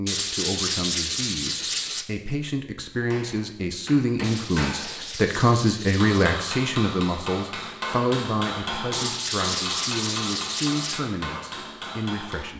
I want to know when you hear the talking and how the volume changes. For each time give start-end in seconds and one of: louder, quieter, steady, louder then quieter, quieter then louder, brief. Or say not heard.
0.0-12.5 louder then quieter.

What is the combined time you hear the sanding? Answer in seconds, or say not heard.
6 s.